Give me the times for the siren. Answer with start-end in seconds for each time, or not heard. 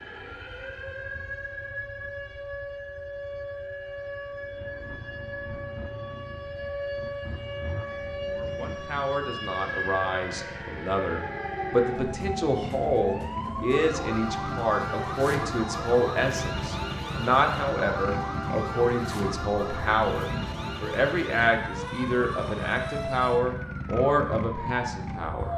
0.0-25.5.